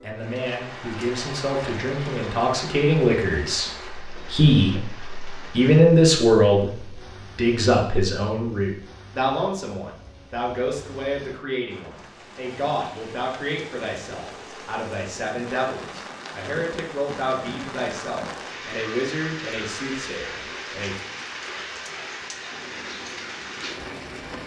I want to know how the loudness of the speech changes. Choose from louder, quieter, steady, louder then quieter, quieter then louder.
louder then quieter.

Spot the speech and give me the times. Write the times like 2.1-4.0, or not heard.
0.0-21.0.